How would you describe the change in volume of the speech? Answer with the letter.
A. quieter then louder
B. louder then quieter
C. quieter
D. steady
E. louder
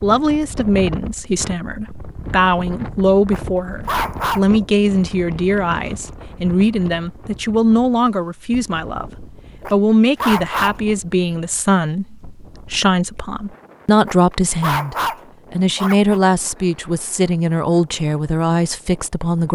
D.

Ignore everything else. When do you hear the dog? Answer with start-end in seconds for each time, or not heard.
3.3-4.5, 9.6-10.8, 14.1-16.2.